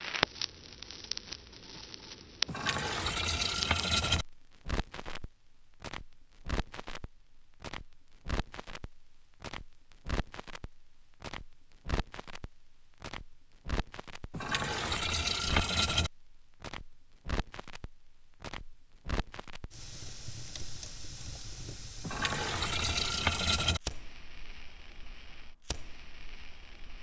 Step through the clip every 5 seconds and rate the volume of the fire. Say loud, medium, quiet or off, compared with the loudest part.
loud, medium, medium, medium, medium, quiet.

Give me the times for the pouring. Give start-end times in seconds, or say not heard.
2.5-4.2, 14.3-16.1, 22.0-23.8.